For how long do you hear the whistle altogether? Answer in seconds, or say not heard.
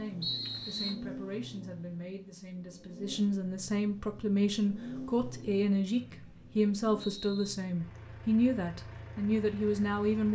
2 s.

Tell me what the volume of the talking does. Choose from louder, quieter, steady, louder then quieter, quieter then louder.
louder.